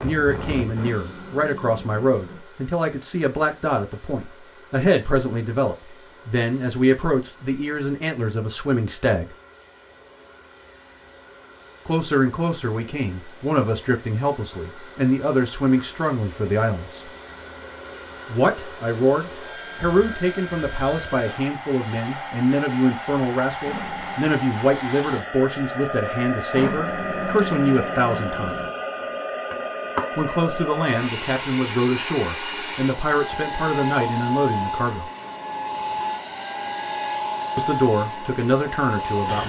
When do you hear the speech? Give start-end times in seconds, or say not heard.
0.0-9.3, 11.8-17.1, 18.3-28.6, 30.1-35.0, 37.5-39.4.